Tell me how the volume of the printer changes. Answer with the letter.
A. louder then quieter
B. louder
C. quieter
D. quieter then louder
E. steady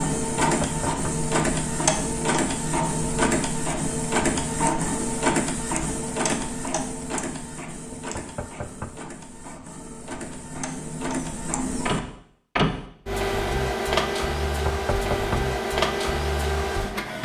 D.